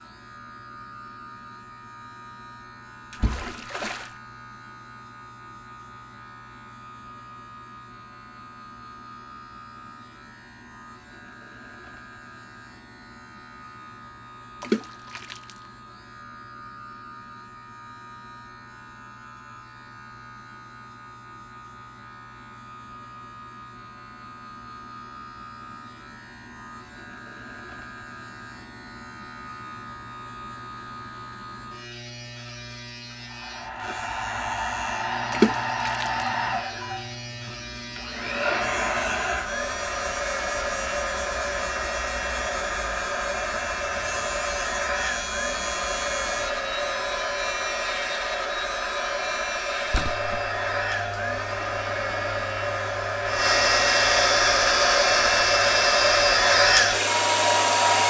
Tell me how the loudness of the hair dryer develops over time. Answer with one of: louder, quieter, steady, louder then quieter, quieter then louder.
louder.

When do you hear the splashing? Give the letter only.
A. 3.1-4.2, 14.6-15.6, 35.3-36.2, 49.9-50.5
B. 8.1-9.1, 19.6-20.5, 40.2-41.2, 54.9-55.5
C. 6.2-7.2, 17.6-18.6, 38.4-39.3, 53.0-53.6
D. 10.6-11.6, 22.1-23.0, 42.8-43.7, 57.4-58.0
A.